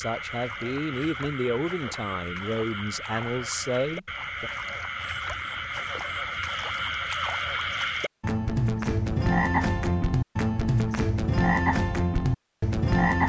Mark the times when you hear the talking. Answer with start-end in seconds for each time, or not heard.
0.0-4.5.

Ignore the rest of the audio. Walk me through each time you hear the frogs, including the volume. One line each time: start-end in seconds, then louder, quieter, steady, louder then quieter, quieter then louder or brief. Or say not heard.
0.0-13.2 louder.